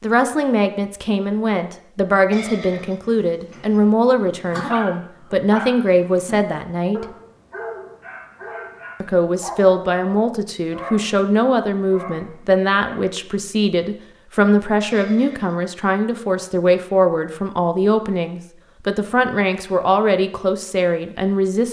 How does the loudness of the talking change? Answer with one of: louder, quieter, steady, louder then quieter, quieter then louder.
steady.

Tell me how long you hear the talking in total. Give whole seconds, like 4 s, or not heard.
20 s.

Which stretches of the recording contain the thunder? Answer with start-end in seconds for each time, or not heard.
not heard.